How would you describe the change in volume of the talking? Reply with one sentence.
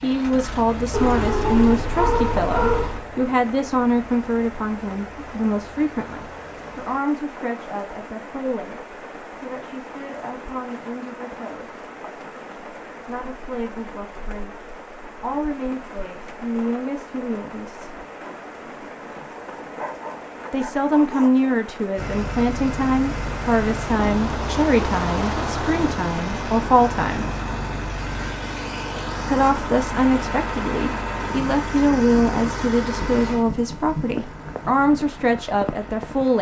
The volume of the talking goes down, then up.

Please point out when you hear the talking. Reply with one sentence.
The talking can be heard from 0.0 to 11.8 s, from 13.0 to 18.1 s, from 20.5 to 27.2 s and from 29.2 to 36.3 s.